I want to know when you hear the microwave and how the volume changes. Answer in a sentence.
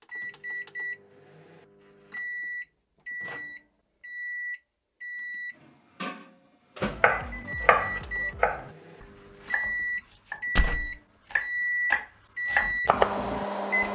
The microwave can be heard from 0.0 to 13.8 s, getting louder.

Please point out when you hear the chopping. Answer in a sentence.
You can hear the chopping from 6.8 to 10.4 s and from 11.2 to 13.8 s.